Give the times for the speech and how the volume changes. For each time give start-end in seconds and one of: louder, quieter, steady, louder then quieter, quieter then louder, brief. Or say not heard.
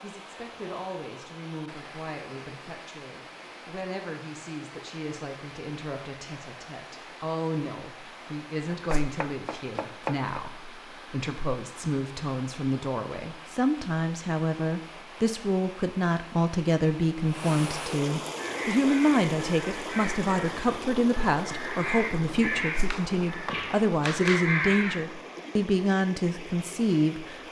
0.0-27.4 louder.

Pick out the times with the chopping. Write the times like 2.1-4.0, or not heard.
8.7-10.4, 22.9-24.5.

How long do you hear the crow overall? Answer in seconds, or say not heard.
7 s.